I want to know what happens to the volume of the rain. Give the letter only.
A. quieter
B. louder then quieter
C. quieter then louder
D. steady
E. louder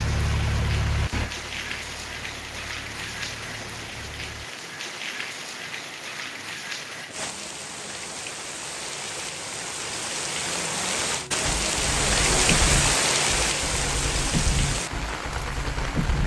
E.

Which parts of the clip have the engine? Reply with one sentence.
You can hear the engine from 0.0 to 4.5 s and from 11.1 to 16.2 s.